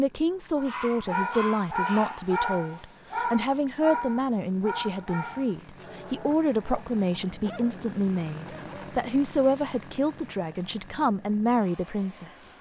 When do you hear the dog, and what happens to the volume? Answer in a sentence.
You can hear the dog from 0.6 to 8.9 s, getting quieter.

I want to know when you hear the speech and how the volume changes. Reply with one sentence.
You can hear the speech from 0.0 to 12.5 s, at a steady volume.